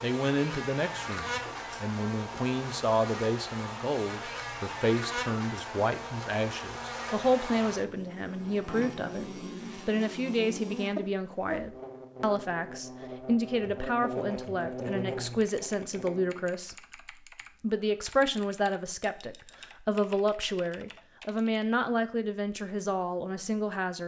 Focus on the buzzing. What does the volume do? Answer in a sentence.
The loudness of the buzzing stays about the same.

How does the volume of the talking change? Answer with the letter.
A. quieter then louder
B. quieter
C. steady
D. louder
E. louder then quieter
C.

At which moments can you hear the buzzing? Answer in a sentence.
You can hear the buzzing from 0.0 to 16.4 s.